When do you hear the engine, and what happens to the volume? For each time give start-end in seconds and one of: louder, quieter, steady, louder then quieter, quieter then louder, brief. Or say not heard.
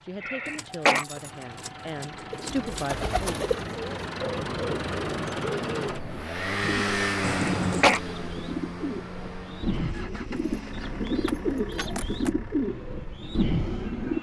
0.0-14.1 louder then quieter.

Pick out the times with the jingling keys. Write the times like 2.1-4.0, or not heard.
0.5-2.9, 7.2-8.0, 10.3-12.3.